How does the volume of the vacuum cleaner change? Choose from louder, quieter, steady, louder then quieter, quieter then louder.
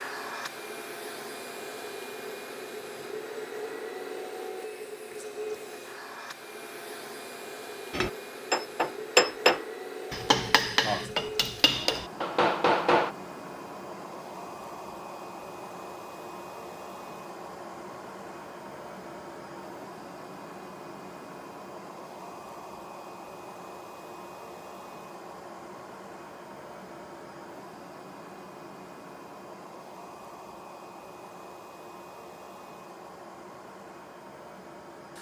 quieter.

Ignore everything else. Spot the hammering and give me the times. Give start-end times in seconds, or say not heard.
7.9-13.1.